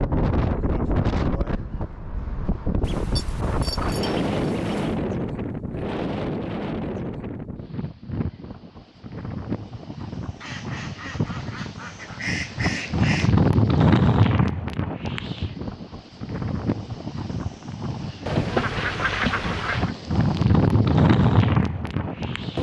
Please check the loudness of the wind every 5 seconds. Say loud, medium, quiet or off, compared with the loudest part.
medium, medium, loud, medium, loud.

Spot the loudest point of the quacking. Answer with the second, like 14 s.
19 s.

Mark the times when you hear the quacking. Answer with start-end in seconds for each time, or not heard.
2.8-5.0, 10.4-13.3, 18.2-19.9.